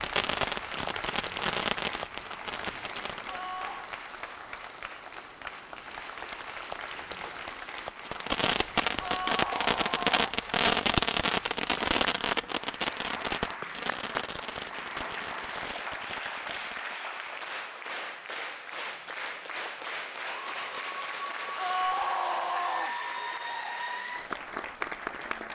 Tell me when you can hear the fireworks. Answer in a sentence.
You can hear the fireworks from 0.0 to 3.4 s and from 8.1 to 17.3 s.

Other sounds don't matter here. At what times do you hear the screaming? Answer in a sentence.
The screaming can be heard from 3.2 to 4.0 s, from 9.0 to 10.1 s and from 21.6 to 22.9 s.